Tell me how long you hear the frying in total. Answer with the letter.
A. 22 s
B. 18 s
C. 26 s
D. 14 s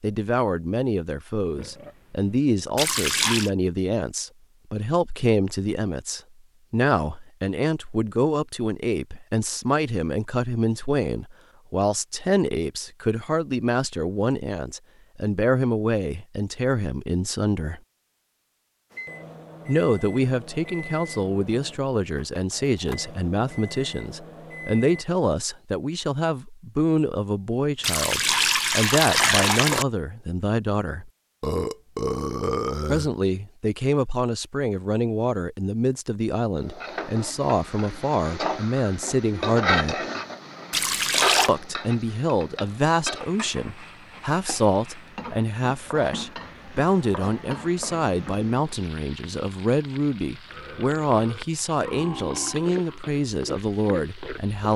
B.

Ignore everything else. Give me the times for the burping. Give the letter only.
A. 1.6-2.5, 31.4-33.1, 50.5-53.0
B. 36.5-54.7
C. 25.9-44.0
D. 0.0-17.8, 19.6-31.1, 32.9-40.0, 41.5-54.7
A.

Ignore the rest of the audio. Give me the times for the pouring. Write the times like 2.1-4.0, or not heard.
2.8-3.5, 27.8-29.9, 40.7-41.5.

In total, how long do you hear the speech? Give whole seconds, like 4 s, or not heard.
50 s.